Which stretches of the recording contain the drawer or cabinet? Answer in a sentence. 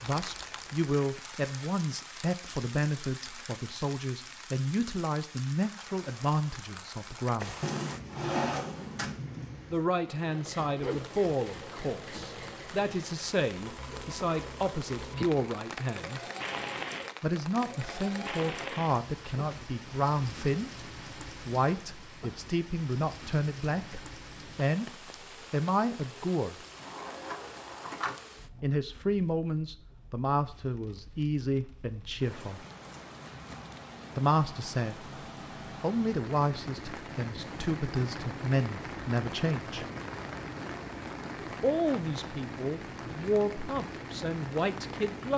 You can hear the drawer or cabinet from 7.6 to 9.2 s and from 26.8 to 28.1 s.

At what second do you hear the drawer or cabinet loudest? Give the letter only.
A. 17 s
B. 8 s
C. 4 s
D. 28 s
B.